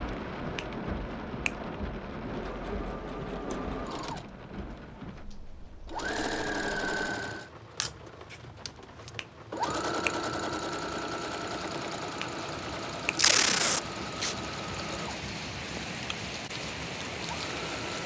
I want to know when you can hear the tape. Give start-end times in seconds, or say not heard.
13.2-14.3.